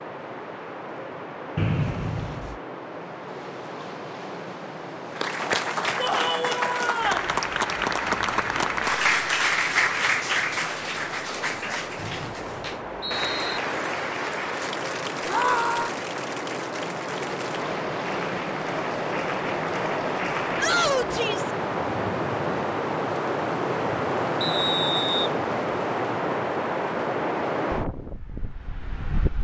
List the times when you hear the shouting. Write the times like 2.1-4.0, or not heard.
6.0-7.3, 15.2-15.9, 20.6-21.5.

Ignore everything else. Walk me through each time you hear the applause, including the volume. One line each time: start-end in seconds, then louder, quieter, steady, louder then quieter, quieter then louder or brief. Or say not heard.
5.1-20.8 quieter.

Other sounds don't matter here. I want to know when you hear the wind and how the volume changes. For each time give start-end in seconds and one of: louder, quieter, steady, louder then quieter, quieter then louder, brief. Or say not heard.
0.0-29.3 louder.